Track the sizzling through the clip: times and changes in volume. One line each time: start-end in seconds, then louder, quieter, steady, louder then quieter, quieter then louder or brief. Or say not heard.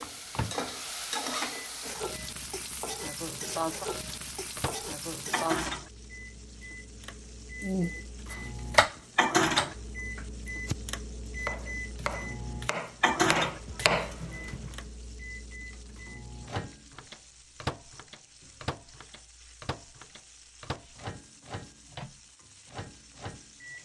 0.0-23.8 quieter.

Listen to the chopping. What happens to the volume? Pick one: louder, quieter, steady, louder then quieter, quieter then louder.
quieter then louder.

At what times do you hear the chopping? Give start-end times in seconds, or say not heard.
7.6-10.8, 11.4-14.7.